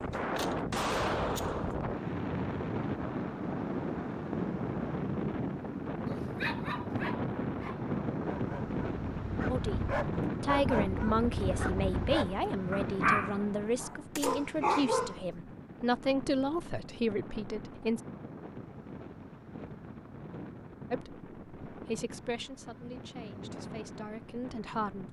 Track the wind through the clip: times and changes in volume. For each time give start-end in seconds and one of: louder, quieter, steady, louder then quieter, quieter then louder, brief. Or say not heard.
0.0-25.0 quieter.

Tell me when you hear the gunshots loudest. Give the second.
1 s.